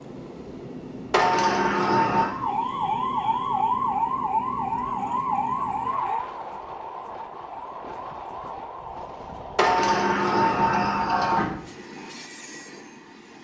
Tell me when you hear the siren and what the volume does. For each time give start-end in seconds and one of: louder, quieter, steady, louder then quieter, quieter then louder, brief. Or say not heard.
2.2-8.9 quieter.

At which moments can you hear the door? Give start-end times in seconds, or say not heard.
1.1-2.3, 9.6-11.5.